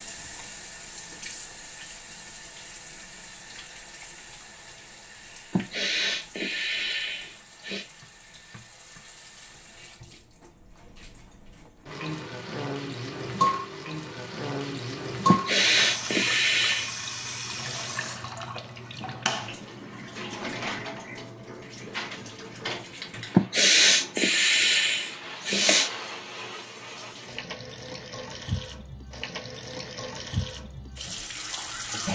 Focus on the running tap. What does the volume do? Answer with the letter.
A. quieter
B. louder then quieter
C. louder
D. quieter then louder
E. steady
B.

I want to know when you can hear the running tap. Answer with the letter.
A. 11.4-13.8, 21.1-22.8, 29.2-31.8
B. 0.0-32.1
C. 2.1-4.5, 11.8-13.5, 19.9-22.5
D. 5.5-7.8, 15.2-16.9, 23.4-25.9
B.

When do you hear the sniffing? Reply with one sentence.
The sniffing can be heard from 5.5 to 7.8 s, from 15.2 to 16.9 s and from 23.4 to 25.9 s.